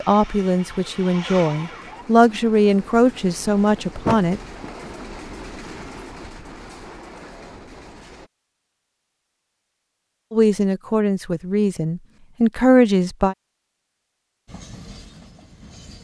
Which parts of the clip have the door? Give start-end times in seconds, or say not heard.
4.0-4.8.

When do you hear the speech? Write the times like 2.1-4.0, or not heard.
0.0-4.4, 10.3-13.3.